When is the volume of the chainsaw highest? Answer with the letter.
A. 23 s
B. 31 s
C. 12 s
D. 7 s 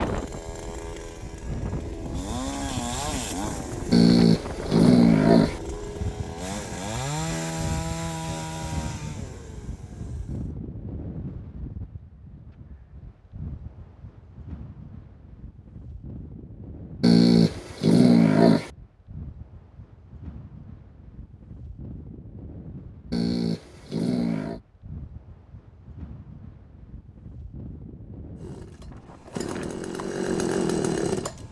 B.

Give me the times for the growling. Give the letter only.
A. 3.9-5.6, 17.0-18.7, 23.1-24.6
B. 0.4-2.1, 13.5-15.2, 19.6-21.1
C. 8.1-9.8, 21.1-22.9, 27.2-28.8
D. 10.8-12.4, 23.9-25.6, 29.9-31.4
A.